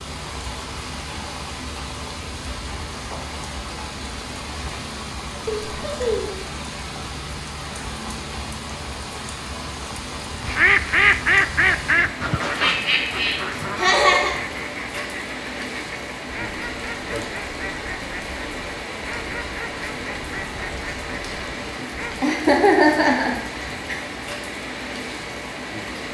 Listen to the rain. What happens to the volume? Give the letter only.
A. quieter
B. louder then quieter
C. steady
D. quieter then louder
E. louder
C.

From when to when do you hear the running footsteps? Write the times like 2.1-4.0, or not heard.
not heard.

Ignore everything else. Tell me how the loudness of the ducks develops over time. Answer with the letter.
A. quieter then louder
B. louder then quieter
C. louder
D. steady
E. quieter
E.